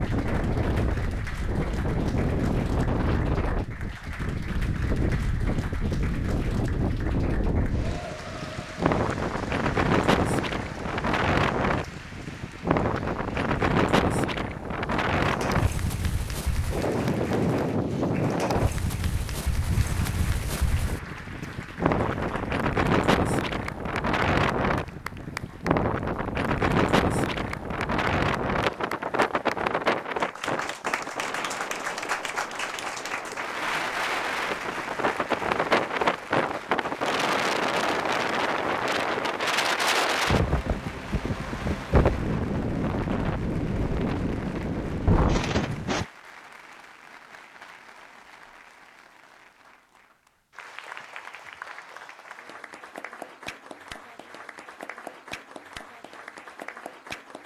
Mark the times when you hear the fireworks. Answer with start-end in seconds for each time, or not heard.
not heard.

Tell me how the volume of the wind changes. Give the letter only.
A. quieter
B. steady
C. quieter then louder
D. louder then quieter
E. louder
B.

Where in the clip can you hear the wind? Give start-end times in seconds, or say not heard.
0.0-46.0.